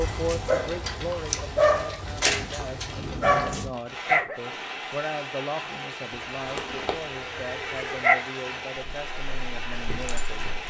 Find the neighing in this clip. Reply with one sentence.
You can hear the neighing from 6.1 to 8.1 s.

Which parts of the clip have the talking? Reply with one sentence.
The talking can be heard from 0.0 to 10.5 s.